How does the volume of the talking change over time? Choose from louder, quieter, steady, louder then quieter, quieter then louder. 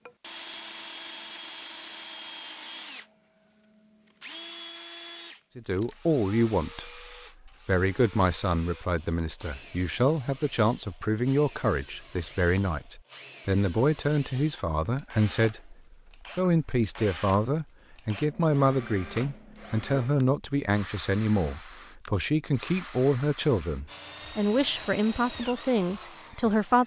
steady.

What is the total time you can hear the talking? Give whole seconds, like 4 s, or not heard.
21 s.